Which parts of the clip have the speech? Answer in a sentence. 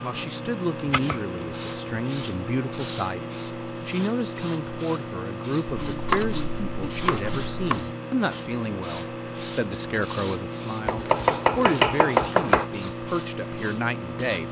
The speech can be heard from 0.0 to 14.4 s.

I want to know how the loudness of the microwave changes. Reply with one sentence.
The volume of the microwave stays about the same.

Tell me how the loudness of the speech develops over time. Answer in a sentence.
The volume of the speech stays about the same.